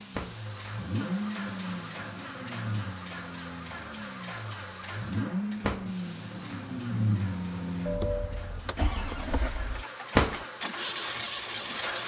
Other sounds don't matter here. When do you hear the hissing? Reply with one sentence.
You can hear the hissing from 0.0 to 12.0 s.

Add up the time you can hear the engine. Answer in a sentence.
The engine can be heard for 12 seconds in total.